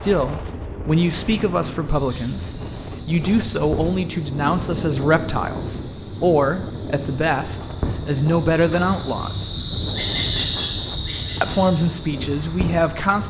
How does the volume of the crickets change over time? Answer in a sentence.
The volume of the crickets goes up.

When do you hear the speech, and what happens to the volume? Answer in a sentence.
You can hear the speech from 0.0 to 9.6 s, at a steady volume; and briefly from 11.4 to 13.2 s.